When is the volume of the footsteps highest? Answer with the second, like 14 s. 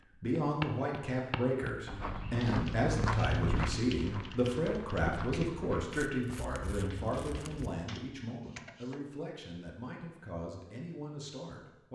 3 s.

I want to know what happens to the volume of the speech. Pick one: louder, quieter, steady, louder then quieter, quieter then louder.
quieter.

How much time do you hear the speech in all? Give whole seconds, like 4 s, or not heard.
12 s.